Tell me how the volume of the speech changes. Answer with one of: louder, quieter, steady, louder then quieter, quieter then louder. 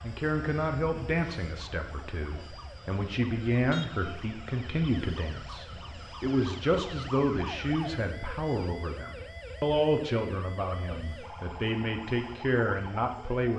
steady.